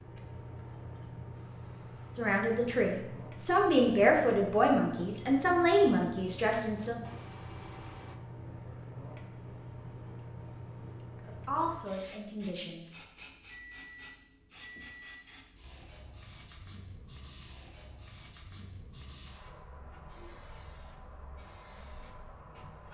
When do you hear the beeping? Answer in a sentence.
You can hear the beeping from 7.0 to 8.2 s and from 13.4 to 15.2 s.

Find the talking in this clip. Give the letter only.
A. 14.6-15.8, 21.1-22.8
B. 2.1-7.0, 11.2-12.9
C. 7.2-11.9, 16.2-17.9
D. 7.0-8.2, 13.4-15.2
B.